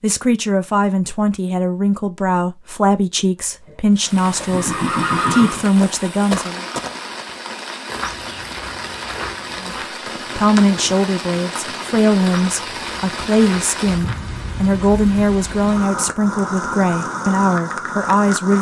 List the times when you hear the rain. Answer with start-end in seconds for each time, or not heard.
3.9-18.5.